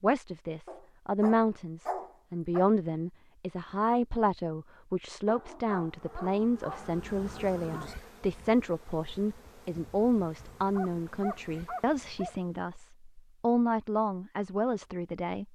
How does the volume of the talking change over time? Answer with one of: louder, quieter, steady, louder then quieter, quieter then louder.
steady.